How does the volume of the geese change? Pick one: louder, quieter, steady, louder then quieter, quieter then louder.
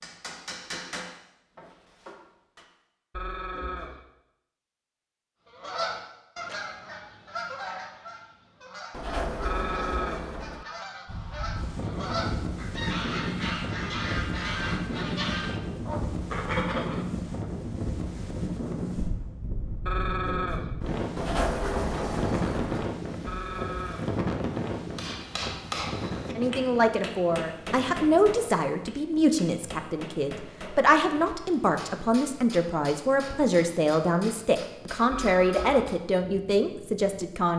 quieter then louder.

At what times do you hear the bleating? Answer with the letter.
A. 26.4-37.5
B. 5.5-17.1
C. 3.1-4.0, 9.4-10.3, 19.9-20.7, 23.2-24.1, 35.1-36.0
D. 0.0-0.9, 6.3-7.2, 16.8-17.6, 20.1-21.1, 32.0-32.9
C.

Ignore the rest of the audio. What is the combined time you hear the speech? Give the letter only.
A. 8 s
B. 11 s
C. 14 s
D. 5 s
B.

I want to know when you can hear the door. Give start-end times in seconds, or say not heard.
8.9-10.7, 21.1-22.9.